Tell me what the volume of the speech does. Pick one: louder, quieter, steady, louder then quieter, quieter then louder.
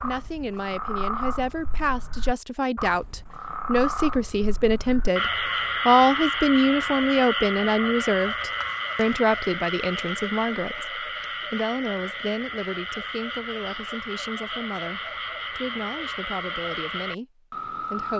louder then quieter.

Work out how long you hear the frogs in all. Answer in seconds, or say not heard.
18 s.